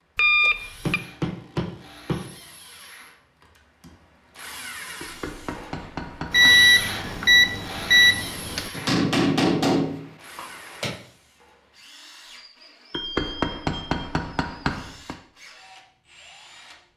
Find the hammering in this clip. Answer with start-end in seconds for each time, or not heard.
0.8-2.3, 5.0-6.6, 8.8-10.9, 12.9-15.2.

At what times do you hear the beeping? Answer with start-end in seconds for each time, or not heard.
0.1-1.0, 6.3-8.7, 12.9-14.0.